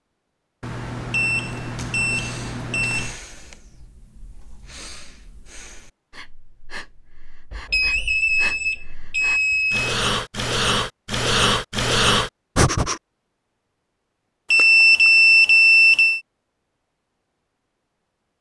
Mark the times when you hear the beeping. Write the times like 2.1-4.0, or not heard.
0.6-3.1, 7.5-9.9, 14.5-16.2.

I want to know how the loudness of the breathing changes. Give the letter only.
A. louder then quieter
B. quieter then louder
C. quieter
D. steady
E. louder
E.